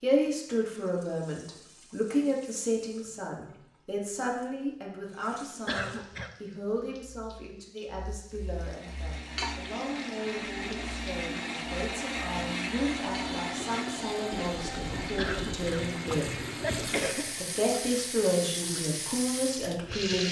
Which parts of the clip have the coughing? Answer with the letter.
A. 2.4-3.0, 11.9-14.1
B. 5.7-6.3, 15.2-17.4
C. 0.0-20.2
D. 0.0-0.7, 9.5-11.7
B.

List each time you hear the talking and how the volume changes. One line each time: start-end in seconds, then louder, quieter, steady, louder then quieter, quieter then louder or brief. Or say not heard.
0.0-20.2 quieter then louder.